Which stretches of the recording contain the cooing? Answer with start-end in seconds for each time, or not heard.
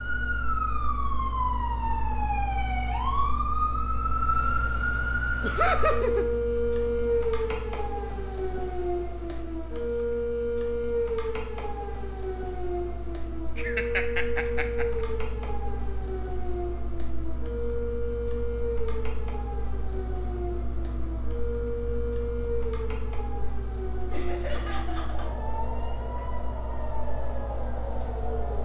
not heard.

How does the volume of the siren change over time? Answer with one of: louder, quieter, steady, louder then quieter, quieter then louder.
quieter.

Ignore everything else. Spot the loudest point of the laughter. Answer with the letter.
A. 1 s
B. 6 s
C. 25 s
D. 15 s
B.